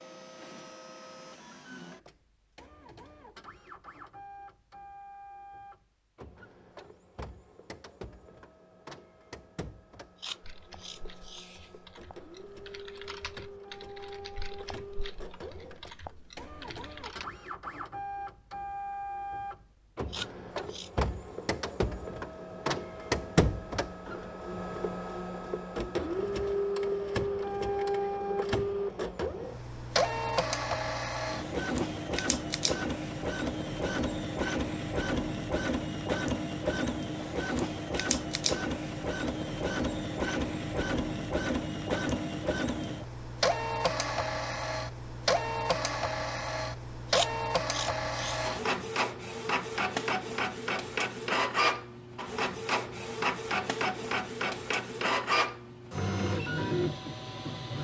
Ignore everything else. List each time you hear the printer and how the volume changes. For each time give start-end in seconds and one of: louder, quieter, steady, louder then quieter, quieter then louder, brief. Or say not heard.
0.0-57.7 louder.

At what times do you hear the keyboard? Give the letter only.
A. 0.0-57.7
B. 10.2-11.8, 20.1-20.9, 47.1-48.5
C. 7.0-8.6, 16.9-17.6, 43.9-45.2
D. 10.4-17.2
D.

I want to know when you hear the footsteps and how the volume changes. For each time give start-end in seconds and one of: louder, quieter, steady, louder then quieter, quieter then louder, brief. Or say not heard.
not heard.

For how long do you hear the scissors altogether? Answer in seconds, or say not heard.
4 s.